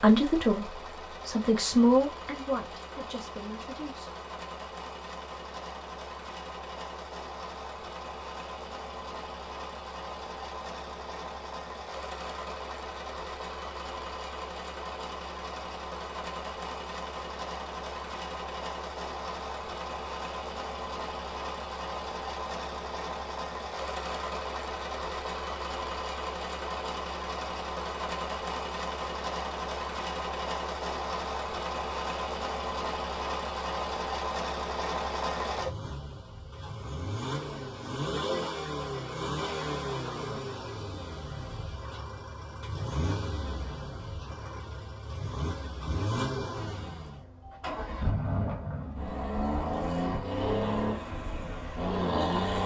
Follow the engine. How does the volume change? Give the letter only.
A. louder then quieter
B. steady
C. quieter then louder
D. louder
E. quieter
D.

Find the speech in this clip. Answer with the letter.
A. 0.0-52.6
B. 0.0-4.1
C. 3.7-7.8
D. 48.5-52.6
B.